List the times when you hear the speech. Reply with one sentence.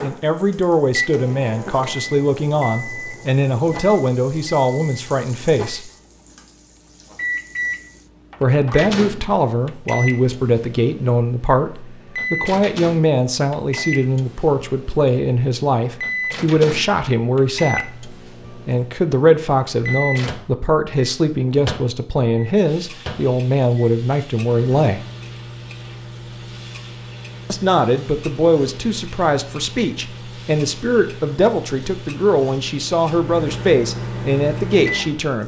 You can hear the speech from 0.0 to 5.9 s, from 8.4 to 25.0 s and from 27.4 to 35.4 s.